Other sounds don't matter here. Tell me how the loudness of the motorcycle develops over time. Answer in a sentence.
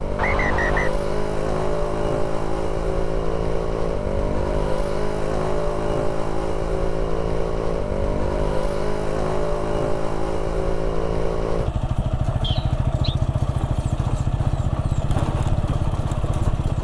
The loudness of the motorcycle stays about the same.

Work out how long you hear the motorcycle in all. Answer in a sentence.
You can hear the motorcycle for 17 seconds altogether.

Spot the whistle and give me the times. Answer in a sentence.
The whistle can be heard from 0.1 to 0.9 s and from 12.4 to 13.2 s.